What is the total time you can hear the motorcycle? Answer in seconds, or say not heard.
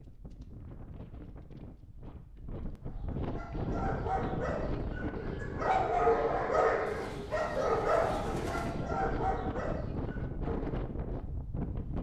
not heard.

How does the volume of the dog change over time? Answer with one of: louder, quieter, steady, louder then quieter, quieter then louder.
louder then quieter.